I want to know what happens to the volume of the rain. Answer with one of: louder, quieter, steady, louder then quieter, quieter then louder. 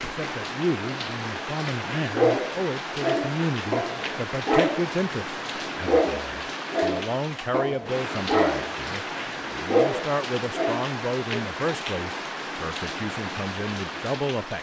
steady.